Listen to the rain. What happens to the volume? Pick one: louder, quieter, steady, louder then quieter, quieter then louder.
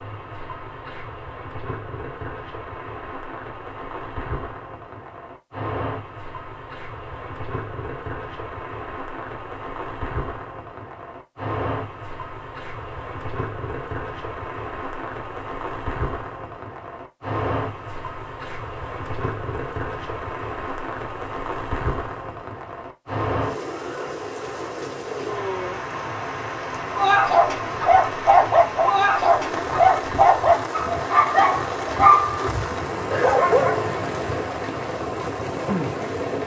louder.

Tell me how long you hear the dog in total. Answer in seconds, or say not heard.
7 s.